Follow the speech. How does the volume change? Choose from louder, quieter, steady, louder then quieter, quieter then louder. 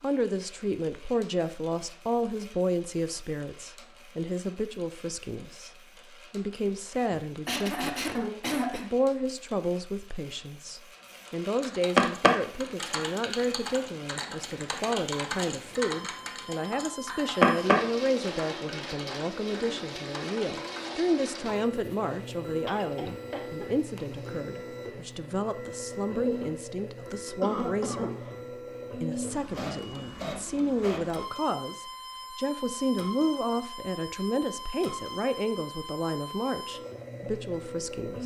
steady.